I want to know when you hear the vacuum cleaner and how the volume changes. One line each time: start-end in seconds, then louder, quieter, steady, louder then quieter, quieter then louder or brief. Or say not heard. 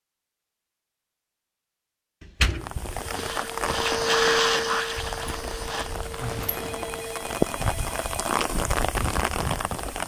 2.9-7.3 louder then quieter.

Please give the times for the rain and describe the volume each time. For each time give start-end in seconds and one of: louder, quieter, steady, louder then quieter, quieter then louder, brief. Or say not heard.
2.6-10.0 quieter then louder.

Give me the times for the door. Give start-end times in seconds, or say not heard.
2.2-3.3, 5.2-7.0.